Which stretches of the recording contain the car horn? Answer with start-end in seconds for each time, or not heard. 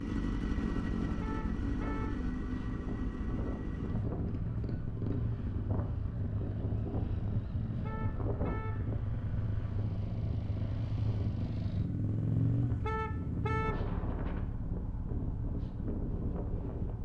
1.1-2.2, 7.8-8.8, 12.8-13.8.